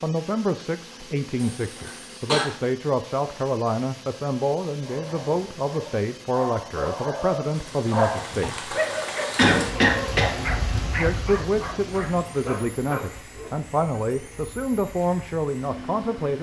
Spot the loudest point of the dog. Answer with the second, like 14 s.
8 s.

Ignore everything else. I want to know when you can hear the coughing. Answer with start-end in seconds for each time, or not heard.
1.4-2.5, 9.3-10.3.